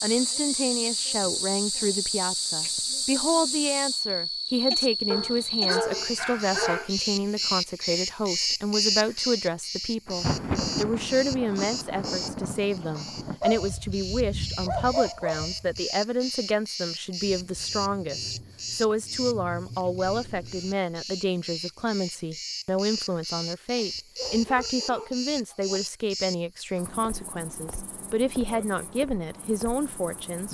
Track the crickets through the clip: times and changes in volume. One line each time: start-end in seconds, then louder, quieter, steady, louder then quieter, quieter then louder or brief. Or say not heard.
0.0-30.4 quieter.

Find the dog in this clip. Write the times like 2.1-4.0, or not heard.
5.1-6.9, 13.4-15.8, 23.9-25.8.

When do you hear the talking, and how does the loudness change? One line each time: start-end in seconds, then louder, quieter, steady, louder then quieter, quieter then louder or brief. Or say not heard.
0.0-30.4 steady.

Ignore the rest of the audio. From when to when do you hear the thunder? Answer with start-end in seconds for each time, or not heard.
10.1-13.3, 17.2-20.8.